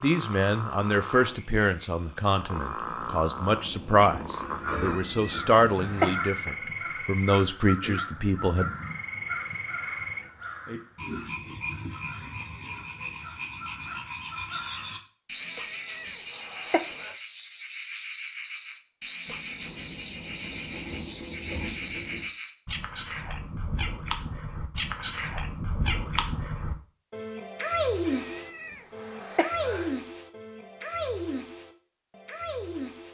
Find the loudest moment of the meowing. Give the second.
6 s.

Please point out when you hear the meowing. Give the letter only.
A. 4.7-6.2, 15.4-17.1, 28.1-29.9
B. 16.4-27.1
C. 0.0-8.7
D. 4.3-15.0
A.